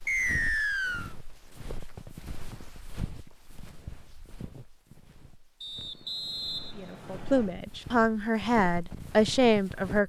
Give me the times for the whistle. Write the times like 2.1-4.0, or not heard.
0.1-1.1, 5.6-7.5.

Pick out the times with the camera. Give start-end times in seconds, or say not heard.
not heard.